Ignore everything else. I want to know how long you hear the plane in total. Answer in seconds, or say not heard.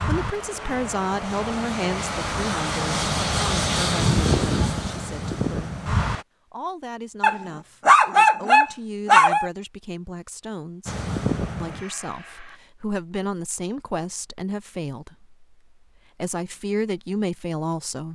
8 s.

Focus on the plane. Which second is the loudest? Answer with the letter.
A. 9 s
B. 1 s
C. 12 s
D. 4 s
D.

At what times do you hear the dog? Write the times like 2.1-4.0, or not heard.
7.2-9.5.